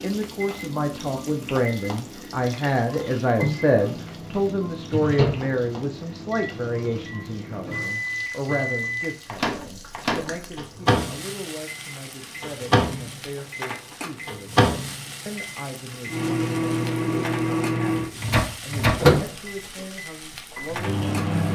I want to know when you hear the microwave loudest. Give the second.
19 s.